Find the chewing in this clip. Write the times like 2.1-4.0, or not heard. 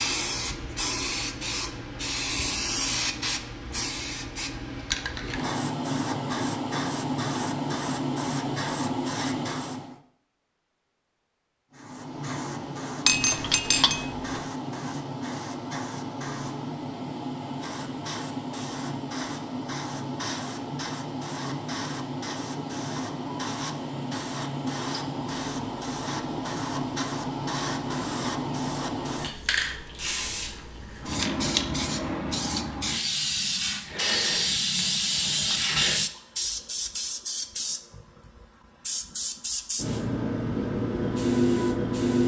not heard.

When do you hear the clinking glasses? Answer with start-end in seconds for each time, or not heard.
13.1-14.4.